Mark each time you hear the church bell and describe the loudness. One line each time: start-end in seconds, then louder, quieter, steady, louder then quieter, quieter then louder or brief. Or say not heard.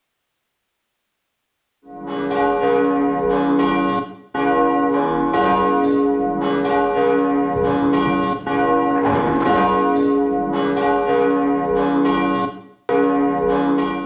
1.9-14.0 steady.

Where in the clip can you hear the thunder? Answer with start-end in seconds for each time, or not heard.
7.5-9.7.